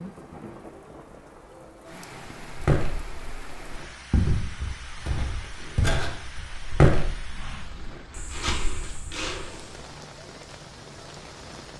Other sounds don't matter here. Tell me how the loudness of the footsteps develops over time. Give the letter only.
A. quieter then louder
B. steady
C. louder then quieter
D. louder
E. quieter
C.